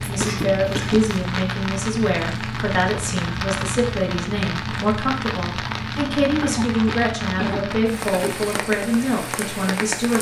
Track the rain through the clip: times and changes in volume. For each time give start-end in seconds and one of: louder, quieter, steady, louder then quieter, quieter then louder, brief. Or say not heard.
0.0-10.1 steady.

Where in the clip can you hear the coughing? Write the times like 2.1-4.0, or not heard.
0.1-1.1, 6.4-8.4.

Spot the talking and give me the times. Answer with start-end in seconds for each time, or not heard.
0.0-10.1.